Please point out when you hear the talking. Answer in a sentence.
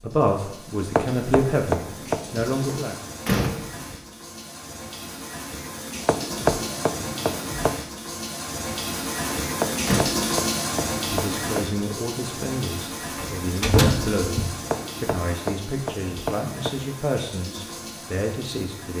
You can hear the talking from 0.0 to 3.0 s and from 11.1 to 18.9 s.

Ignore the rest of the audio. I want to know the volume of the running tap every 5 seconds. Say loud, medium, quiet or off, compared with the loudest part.
medium, loud, loud, medium.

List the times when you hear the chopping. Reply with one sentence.
The chopping can be heard from 0.9 to 2.5 s, from 6.0 to 7.8 s, from 9.6 to 11.6 s and from 14.7 to 16.7 s.